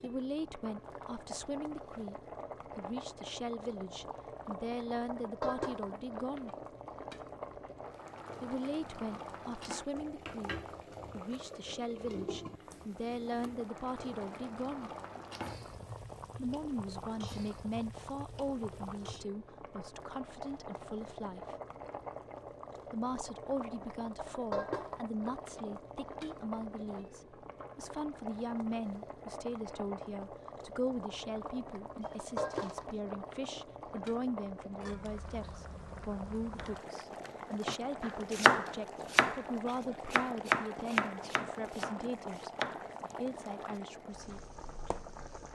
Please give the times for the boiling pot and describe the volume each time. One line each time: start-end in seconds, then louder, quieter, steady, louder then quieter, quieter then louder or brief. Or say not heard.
0.0-45.5 steady.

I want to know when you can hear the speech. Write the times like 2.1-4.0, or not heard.
0.0-6.5, 8.4-14.9, 16.4-21.6, 22.9-44.5.